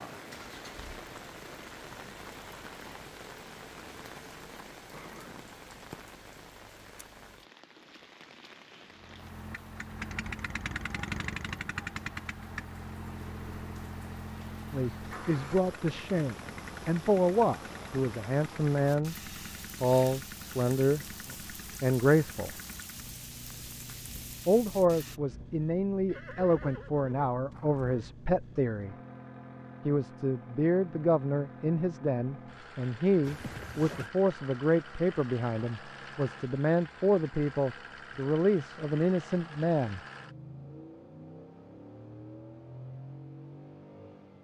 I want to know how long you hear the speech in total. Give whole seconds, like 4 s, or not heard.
22 s.